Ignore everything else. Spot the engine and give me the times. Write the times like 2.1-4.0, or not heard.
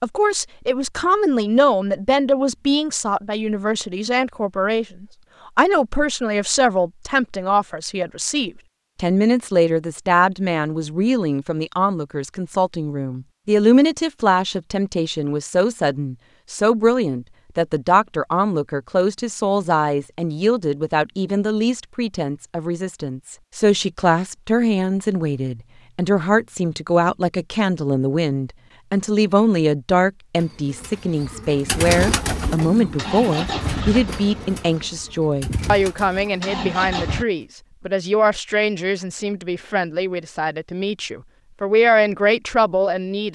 32.8-37.2.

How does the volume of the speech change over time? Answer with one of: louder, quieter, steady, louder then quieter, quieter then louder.
steady.